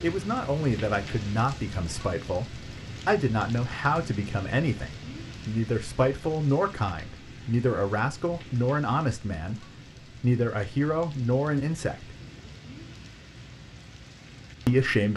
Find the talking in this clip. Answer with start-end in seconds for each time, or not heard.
0.0-12.1, 14.7-15.1.